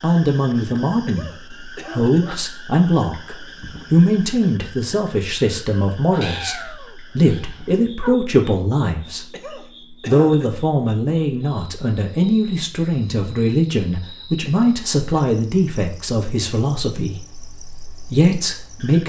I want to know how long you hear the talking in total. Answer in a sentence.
The talking can be heard for 18 seconds in total.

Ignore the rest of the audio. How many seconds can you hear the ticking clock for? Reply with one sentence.
The ticking clock can't be heard in this clip.